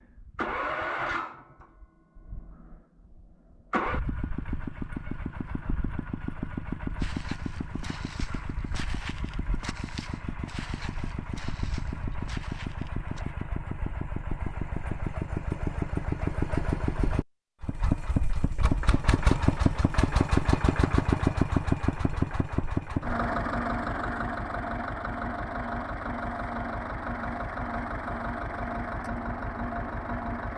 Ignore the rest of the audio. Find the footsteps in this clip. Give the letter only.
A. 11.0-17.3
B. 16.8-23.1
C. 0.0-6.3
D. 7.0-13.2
D.